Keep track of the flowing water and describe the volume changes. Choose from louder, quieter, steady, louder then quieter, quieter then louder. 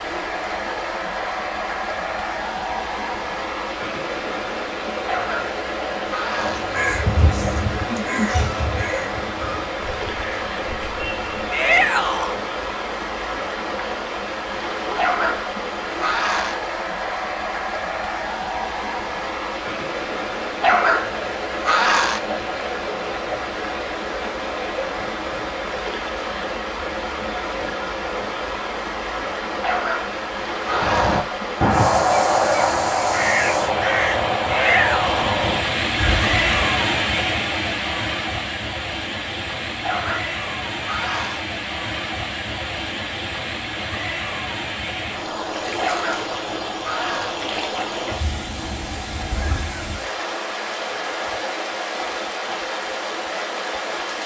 steady.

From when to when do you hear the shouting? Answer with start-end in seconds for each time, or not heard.
11.5-12.3, 34.5-35.2.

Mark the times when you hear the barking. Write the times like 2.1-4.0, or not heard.
5.0-6.7, 14.9-16.6, 20.6-22.2, 29.6-31.2, 39.8-41.4, 45.8-47.4.